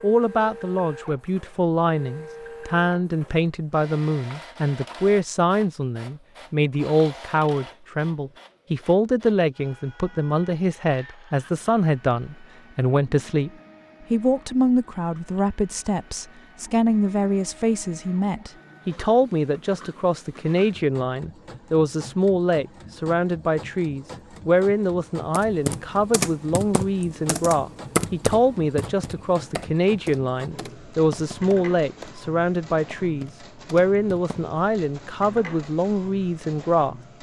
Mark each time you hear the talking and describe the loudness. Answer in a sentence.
You can hear the talking from 0.0 to 13.5 s, at a steady volume; and from 14.1 to 37.0 s, at a steady volume.